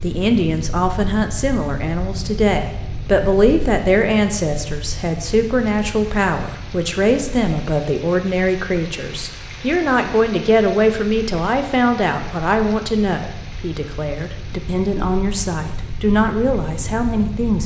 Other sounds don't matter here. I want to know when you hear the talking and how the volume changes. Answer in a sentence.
The talking can be heard from 0.0 to 17.6 s, at a steady volume.